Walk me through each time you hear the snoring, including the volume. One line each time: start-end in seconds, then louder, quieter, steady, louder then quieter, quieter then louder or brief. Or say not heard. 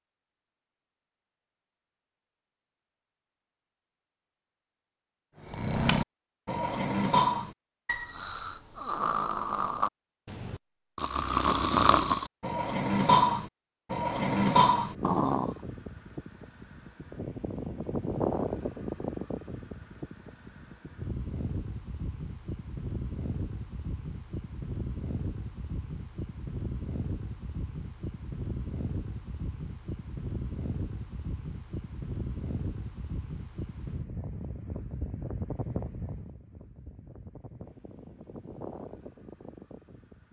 5.5-15.6 quieter then louder.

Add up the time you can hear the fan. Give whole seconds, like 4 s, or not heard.
25 s.